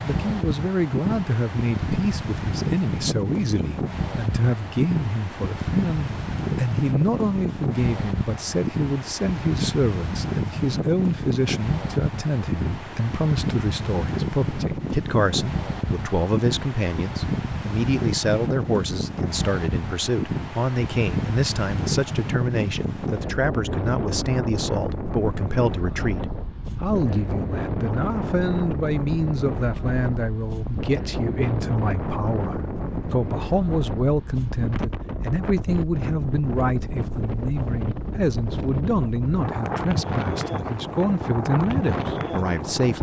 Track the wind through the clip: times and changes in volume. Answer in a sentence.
You can hear the wind from 0.0 to 42.9 s, at a steady volume.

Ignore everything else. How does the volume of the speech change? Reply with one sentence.
The loudness of the speech stays about the same.